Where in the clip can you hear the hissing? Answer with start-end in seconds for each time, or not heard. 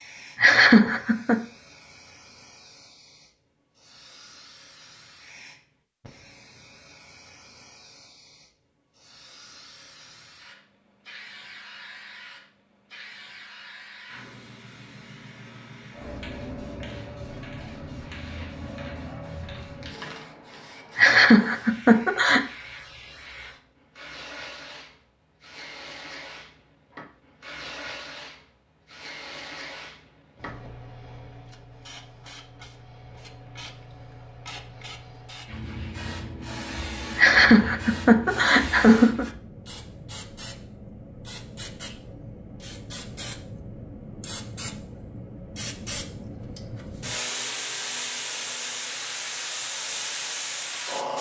0.0-51.1.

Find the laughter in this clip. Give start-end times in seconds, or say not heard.
0.3-1.4, 20.9-22.4, 37.1-39.2.